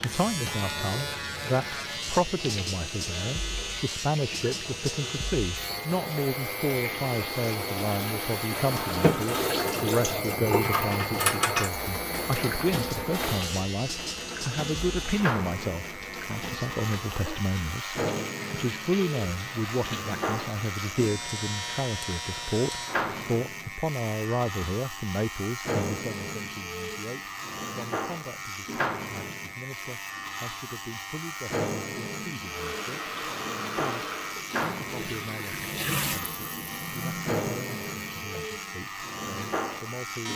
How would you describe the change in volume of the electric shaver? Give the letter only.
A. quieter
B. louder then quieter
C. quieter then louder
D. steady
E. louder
D.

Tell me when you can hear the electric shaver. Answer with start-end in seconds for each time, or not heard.
0.0-40.3.